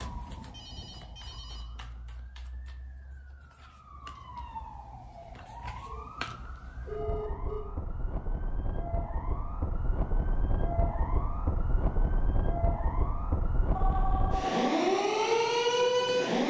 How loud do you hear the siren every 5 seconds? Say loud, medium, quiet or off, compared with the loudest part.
quiet, quiet, medium, loud.